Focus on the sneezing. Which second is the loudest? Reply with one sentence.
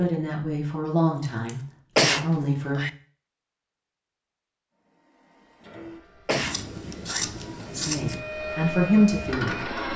The loudest moment of the sneezing is at 2 seconds.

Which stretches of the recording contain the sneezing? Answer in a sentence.
The sneezing can be heard from 1.9 to 2.9 s and from 6.2 to 7.2 s.